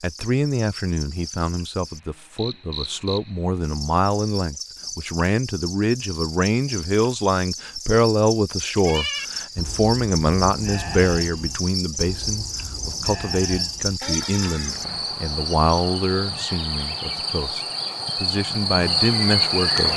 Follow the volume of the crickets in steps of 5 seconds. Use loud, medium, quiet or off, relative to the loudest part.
quiet, medium, medium, loud.